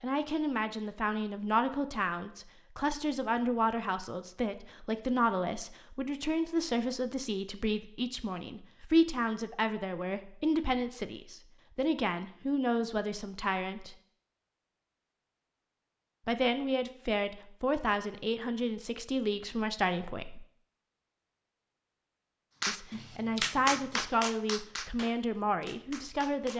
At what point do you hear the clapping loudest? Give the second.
24 s.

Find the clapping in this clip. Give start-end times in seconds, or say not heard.
22.6-26.5.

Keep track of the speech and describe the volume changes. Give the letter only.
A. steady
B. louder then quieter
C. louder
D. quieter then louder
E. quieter
A.